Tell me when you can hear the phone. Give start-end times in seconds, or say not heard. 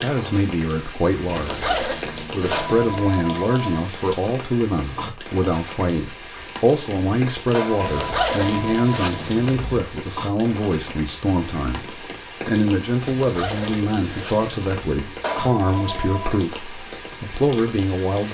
2.5-3.9, 7.5-9.1, 15.2-16.4.